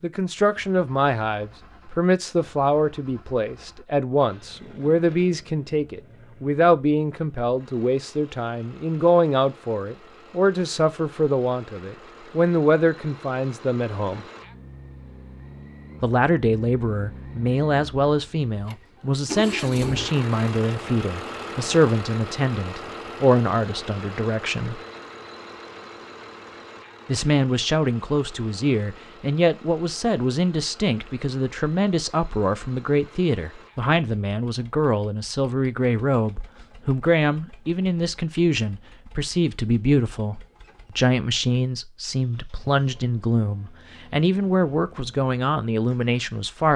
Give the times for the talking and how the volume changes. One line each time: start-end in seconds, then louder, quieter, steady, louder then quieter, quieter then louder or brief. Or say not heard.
0.0-14.2 steady
16.0-24.8 steady
27.1-46.7 steady.